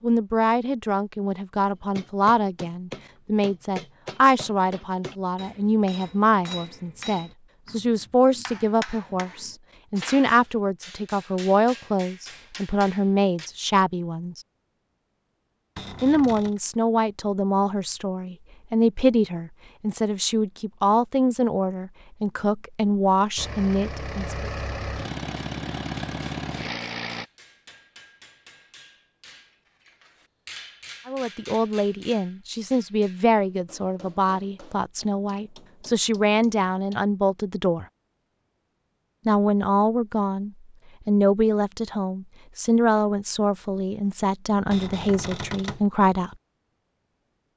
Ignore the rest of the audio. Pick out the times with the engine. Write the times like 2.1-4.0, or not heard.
23.4-27.2.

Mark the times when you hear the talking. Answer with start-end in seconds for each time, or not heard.
0.0-14.4, 16.0-24.4, 31.1-37.9, 39.2-46.4.